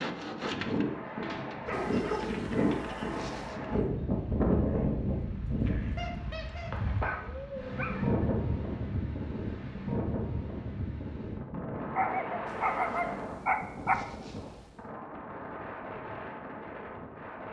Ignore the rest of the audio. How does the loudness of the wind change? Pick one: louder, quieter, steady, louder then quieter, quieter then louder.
quieter.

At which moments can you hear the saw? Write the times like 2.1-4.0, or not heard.
0.0-3.8.